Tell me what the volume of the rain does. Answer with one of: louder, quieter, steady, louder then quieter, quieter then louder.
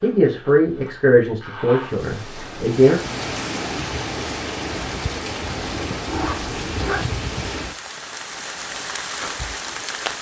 steady.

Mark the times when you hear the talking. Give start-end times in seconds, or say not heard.
0.0-3.0.